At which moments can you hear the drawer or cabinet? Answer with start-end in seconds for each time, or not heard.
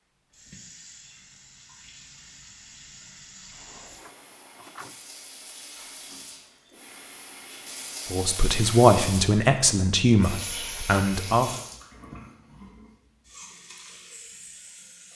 3.5-5.0.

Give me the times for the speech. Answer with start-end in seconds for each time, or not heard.
8.1-11.5.